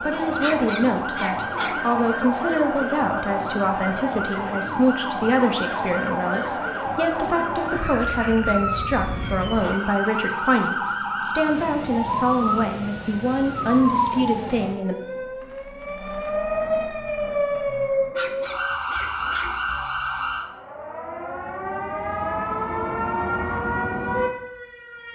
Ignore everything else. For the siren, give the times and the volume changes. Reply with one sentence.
You can hear the siren from 0.0 to 25.0 s, at a steady volume.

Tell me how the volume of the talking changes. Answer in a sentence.
The loudness of the talking stays about the same.